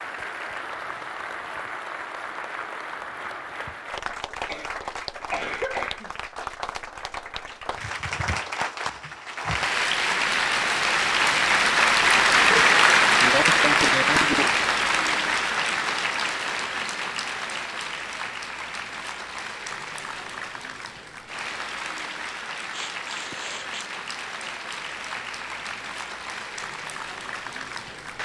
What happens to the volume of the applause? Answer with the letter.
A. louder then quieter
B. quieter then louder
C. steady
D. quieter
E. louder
A.